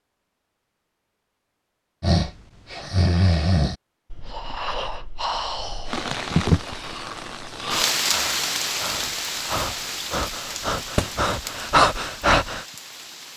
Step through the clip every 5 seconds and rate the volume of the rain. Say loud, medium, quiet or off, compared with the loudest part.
off, loud, medium.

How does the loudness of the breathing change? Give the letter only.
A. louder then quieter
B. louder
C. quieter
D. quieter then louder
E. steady
D.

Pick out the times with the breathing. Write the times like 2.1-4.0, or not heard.
2.0-12.7.